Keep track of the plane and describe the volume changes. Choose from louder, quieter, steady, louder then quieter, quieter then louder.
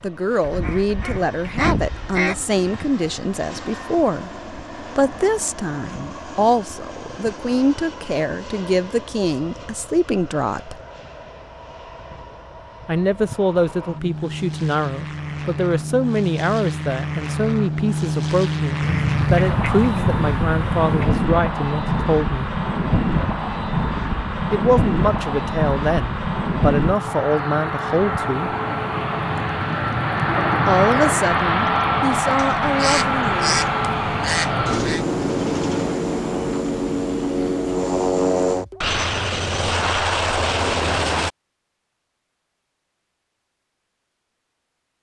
louder.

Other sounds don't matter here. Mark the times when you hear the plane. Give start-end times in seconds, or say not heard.
0.0-41.3.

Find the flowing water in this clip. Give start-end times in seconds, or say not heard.
not heard.